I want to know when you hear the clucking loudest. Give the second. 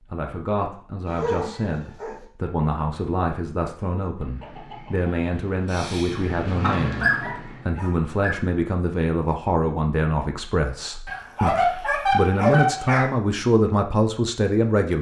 7 s.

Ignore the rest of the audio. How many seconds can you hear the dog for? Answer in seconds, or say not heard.
5 s.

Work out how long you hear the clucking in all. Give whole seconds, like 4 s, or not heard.
4 s.